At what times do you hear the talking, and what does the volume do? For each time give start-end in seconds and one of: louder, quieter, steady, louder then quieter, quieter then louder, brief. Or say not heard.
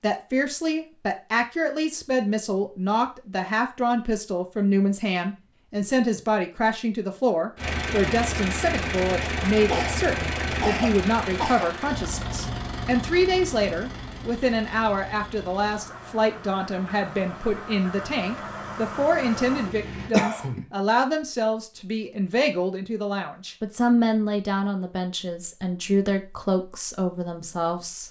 0.0-28.0 steady.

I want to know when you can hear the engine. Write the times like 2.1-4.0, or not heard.
7.5-20.1.